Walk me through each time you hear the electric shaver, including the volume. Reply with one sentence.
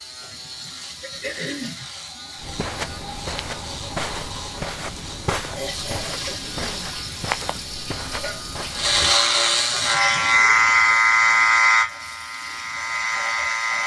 The electric shaver can be heard from 0.0 to 13.8 s, getting louder.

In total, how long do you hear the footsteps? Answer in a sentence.
The footsteps can be heard for 7 seconds in total.